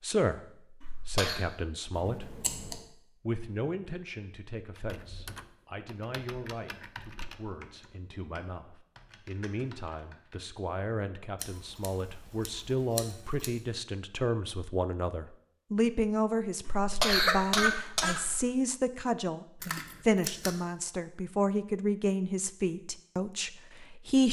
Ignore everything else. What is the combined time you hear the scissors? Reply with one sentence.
You can hear the scissors for 4 seconds altogether.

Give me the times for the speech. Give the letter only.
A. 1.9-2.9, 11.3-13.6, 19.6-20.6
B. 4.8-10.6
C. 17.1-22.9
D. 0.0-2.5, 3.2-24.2
D.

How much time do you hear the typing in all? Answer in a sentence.
The typing can be heard for 6 seconds in total.